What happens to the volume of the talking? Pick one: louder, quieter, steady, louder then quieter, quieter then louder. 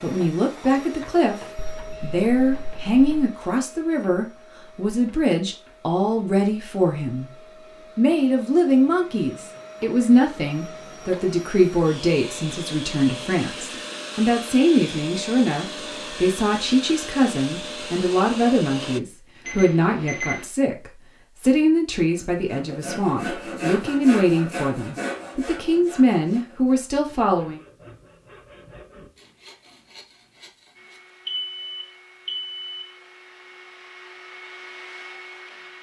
steady.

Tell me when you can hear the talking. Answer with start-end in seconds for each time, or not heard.
0.0-27.6.